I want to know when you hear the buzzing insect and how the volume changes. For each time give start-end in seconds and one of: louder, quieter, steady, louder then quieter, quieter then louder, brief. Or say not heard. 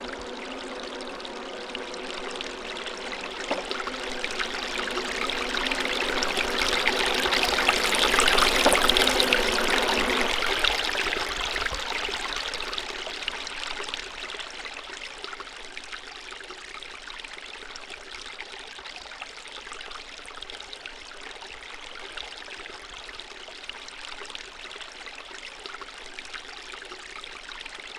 0.0-10.3 louder.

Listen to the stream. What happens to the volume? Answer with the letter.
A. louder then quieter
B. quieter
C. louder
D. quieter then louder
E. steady
A.